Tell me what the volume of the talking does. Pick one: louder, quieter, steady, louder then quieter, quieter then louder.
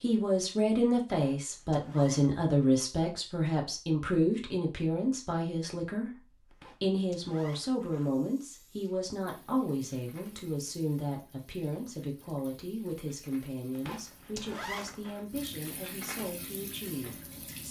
quieter.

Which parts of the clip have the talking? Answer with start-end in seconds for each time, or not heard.
0.0-17.6.